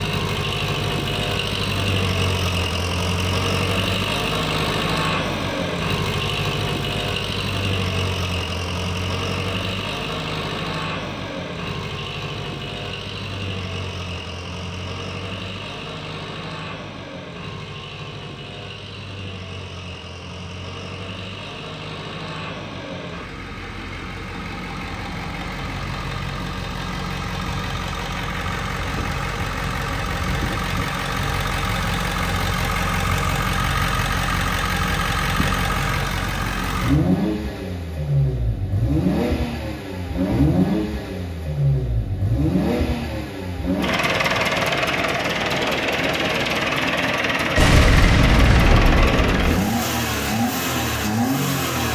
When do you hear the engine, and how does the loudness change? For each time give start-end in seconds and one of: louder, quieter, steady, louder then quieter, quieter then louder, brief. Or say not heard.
0.0-51.8 quieter then louder.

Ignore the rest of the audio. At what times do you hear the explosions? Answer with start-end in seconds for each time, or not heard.
47.5-49.6.